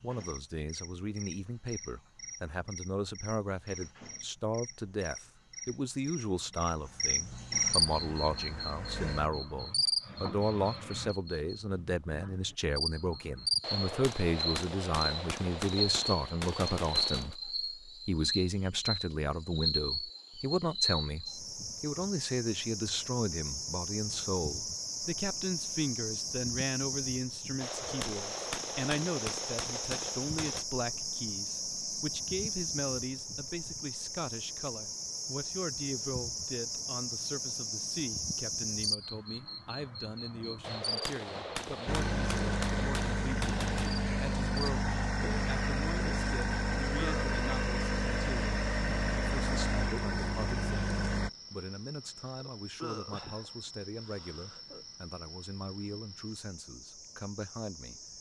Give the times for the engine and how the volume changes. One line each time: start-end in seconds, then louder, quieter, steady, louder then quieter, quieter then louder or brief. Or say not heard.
7.7-9.3 brief
41.9-51.3 steady.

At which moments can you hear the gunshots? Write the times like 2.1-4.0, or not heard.
13.6-17.4, 27.6-30.6, 40.6-44.0.